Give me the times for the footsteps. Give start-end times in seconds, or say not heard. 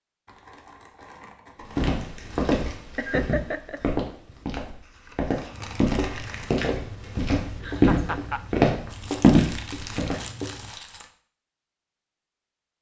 1.8-10.2.